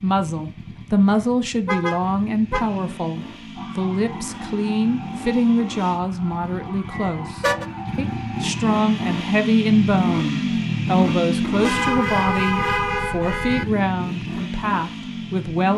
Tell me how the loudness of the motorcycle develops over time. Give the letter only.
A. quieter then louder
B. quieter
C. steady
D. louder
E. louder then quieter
E.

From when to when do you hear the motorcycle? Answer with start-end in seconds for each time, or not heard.
0.0-15.7.